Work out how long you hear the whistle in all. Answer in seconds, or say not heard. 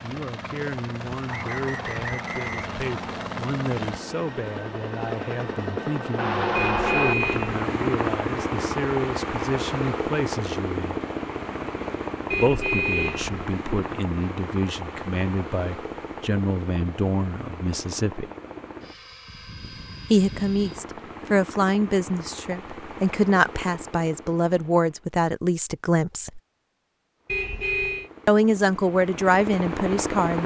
2 s.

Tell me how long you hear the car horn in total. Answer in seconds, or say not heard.
3 s.